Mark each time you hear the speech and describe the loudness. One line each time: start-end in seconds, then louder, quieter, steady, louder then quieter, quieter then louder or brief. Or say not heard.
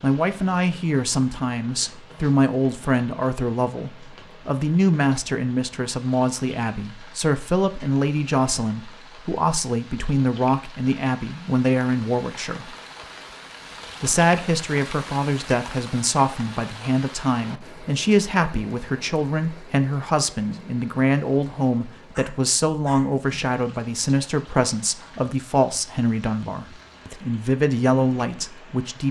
0.0-12.8 steady
14.0-29.0 steady.